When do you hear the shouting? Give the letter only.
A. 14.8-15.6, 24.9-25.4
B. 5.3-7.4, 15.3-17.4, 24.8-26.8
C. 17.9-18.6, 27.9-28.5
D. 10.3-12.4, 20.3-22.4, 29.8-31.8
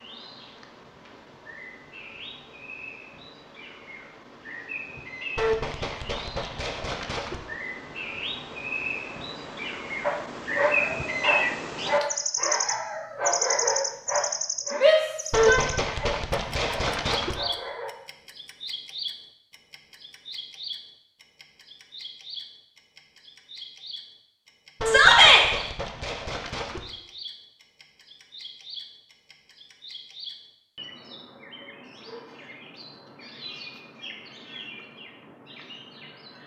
A.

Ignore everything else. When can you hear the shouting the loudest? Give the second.
25 s.